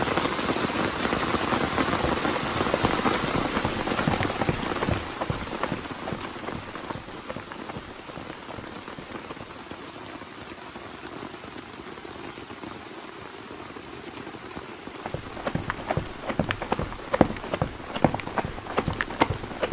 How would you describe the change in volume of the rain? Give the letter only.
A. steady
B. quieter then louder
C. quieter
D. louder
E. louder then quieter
C.